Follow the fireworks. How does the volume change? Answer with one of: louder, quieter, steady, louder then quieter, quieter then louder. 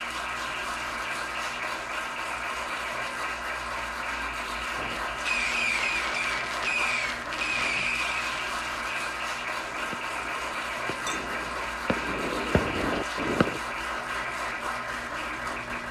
quieter then louder.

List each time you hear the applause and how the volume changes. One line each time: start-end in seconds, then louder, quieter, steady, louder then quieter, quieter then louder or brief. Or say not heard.
0.0-15.8 steady.